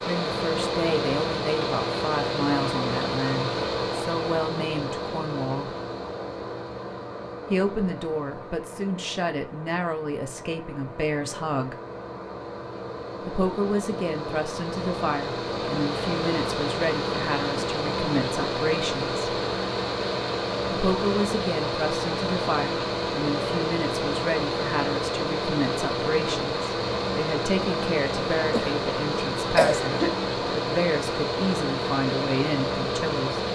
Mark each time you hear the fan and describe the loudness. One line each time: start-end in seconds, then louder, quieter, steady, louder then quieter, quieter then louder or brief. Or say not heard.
0.0-33.5 quieter then louder.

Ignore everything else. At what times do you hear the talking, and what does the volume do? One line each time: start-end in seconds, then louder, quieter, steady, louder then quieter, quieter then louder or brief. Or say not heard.
0.1-5.7 steady
7.5-11.8 steady
13.2-19.2 steady
20.7-33.4 steady.